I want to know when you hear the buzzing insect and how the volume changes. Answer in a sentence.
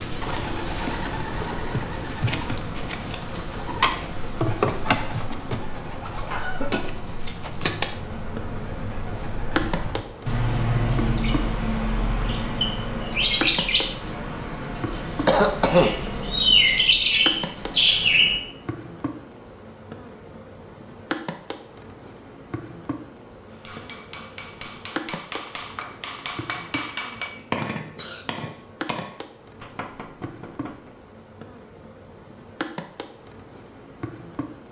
You can hear the buzzing insect from 0.0 to 34.6 s, getting quieter.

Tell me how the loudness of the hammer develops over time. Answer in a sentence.
The volume of the hammer goes up, then down.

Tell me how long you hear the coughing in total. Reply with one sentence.
The coughing can be heard for 3 seconds in total.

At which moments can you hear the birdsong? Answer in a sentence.
The birdsong can be heard from 0.0 to 18.4 s.